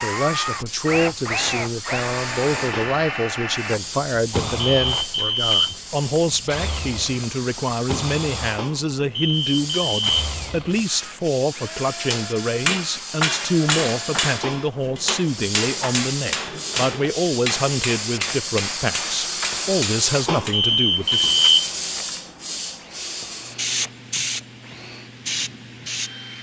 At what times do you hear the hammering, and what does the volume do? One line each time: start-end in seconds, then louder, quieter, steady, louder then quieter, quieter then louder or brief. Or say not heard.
12.0-20.6 quieter.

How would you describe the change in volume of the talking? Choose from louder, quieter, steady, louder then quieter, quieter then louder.
steady.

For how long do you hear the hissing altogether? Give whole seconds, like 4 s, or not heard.
26 s.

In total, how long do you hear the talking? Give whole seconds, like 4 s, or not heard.
21 s.